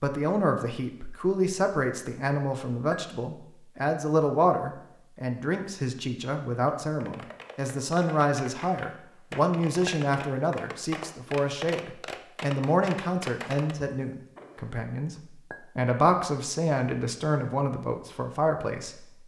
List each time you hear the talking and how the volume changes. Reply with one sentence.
You can hear the talking from 0.0 to 19.2 s, at a steady volume.